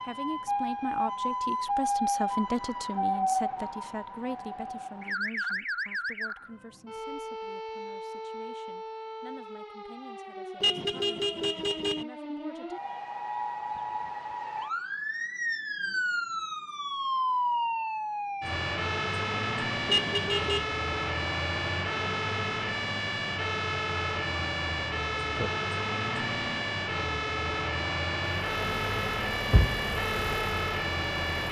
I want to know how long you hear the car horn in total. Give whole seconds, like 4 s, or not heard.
2 s.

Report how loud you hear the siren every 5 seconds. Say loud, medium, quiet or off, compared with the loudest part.
loud, medium, medium, loud, loud, loud, loud.